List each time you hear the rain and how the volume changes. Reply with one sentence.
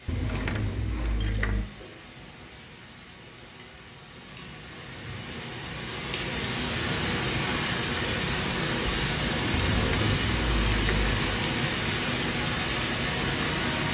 The rain can be heard from 0.0 to 13.8 s, getting louder.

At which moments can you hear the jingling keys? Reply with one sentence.
You can hear the jingling keys from 0.1 to 1.6 s and from 9.5 to 11.2 s.